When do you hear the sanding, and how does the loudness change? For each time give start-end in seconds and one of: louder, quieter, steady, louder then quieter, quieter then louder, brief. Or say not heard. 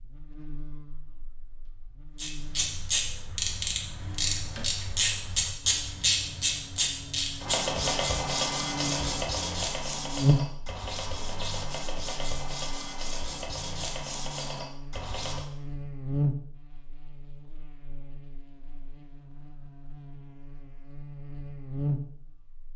7.4-15.4 quieter.